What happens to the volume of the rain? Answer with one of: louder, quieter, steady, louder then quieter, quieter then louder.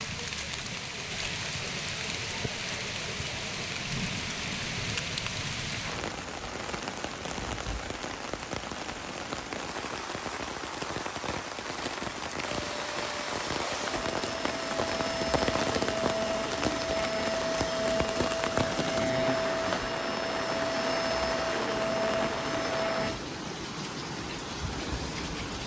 steady.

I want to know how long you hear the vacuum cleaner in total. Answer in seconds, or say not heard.
11 s.